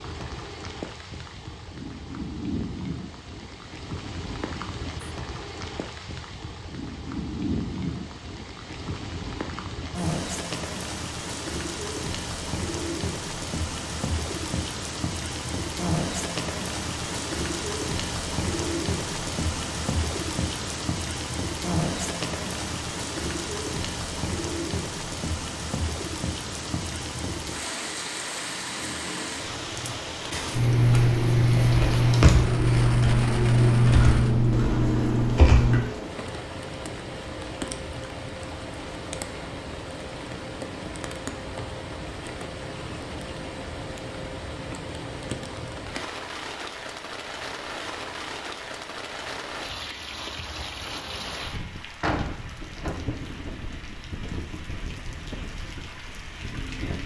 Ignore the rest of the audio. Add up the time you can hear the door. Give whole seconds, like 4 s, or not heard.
2 s.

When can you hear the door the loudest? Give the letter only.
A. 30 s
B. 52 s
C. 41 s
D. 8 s
B.